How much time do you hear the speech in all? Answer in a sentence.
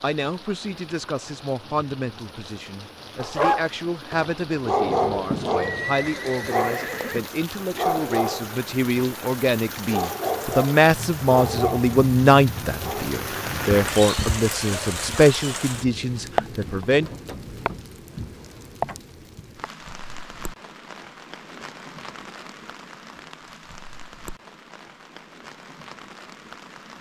The speech can be heard for 17 seconds in total.